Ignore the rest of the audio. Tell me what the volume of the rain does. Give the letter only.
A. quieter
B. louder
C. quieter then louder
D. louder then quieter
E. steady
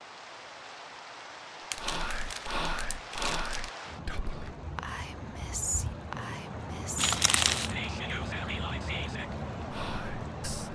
B.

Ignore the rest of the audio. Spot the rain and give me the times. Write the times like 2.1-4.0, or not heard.
0.0-10.6.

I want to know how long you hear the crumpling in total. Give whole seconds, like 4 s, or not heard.
3 s.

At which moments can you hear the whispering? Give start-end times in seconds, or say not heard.
1.8-10.6.